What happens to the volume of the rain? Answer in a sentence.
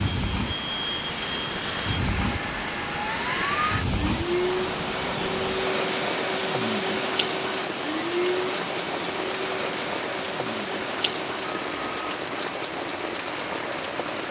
The loudness of the rain stays about the same.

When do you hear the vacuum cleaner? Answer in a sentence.
The vacuum cleaner can be heard from 0.0 to 12.2 s.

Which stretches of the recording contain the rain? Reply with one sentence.
You can hear the rain from 0.0 to 14.2 s.